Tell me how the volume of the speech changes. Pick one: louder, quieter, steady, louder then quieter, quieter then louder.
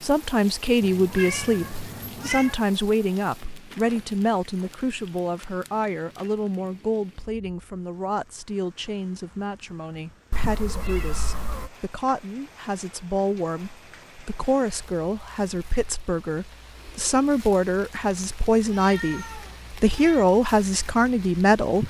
quieter then louder.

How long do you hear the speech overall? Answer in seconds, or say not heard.
22 s.